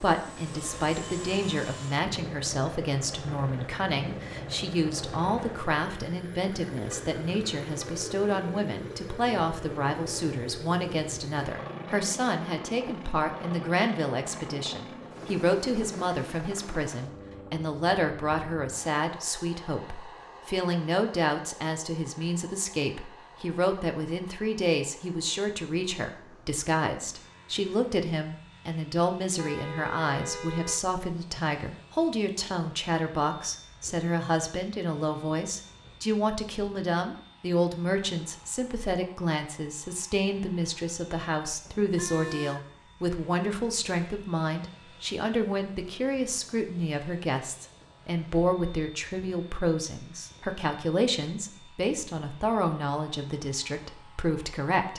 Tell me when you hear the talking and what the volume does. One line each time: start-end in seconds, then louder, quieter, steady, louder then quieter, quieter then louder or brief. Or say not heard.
0.0-54.9 steady.